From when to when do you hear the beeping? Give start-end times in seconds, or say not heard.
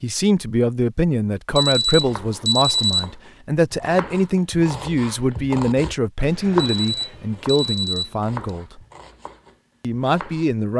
1.6-3.0, 6.5-8.3.